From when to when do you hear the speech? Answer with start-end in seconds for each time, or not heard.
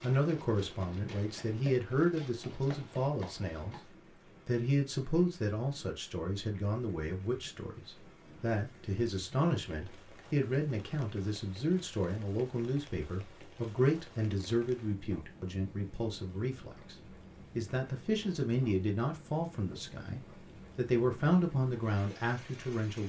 0.0-3.8, 4.5-23.0.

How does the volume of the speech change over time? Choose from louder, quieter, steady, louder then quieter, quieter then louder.
steady.